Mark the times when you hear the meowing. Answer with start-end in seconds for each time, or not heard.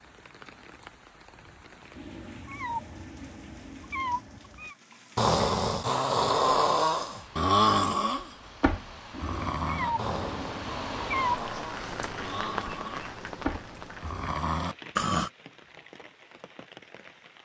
1.9-4.8, 9.1-11.4.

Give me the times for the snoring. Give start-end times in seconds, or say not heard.
5.2-15.3.